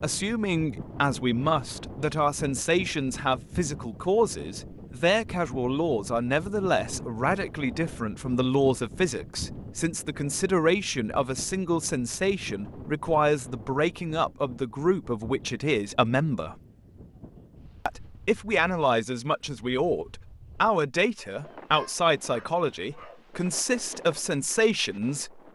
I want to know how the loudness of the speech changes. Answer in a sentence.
The loudness of the speech stays about the same.